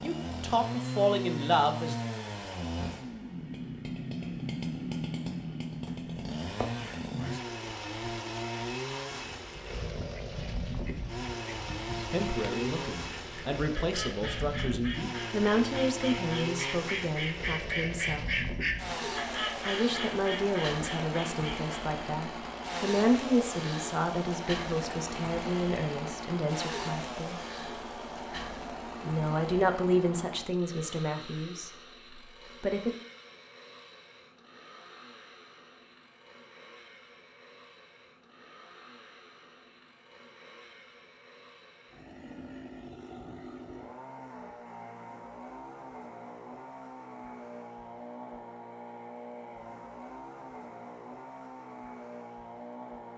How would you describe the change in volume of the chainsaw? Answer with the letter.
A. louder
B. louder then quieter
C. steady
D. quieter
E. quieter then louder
E.